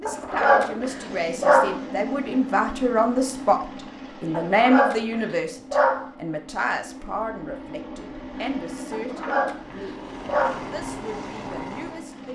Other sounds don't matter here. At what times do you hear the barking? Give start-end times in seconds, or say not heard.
0.1-1.8, 4.3-6.0, 8.9-10.7.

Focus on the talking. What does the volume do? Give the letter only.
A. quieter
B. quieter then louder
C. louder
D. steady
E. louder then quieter
E.